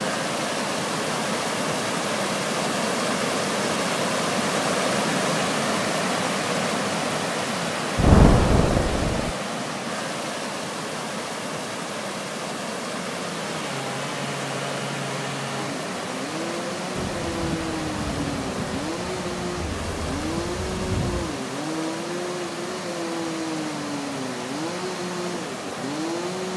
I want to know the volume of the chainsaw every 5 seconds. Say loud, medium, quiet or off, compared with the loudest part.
off, off, loud, loud, loud, loud.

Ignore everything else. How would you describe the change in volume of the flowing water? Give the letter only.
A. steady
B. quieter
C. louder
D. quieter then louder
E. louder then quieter
B.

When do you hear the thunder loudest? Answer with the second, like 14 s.
8 s.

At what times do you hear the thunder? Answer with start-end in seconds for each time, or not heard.
8.0-9.3, 16.9-21.4.